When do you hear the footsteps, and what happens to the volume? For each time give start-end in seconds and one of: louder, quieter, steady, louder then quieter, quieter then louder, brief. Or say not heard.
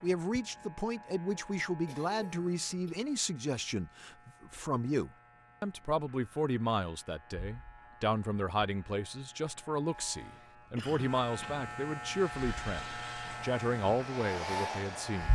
not heard.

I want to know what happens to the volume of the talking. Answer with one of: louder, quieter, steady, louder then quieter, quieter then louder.
steady.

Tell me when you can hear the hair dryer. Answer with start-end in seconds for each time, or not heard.
12.1-15.3.